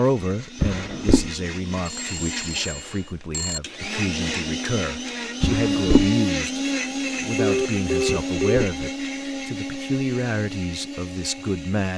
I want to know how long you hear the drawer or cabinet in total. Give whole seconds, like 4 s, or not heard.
2 s.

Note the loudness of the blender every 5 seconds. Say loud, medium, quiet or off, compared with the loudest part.
medium, loud, medium.